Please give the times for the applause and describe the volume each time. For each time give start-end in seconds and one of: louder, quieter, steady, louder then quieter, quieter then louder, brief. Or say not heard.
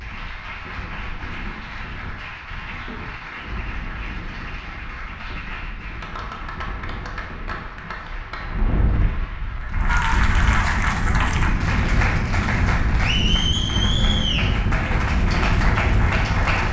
0.0-16.6 louder.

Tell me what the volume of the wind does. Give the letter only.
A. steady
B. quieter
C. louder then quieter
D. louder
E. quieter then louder
D.